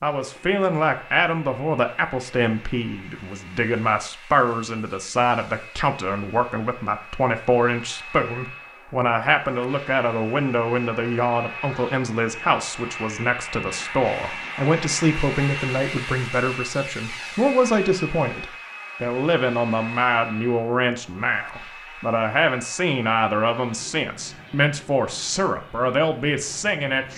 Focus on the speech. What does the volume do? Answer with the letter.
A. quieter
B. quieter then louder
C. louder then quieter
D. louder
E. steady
E.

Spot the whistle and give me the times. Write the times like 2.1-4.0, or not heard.
not heard.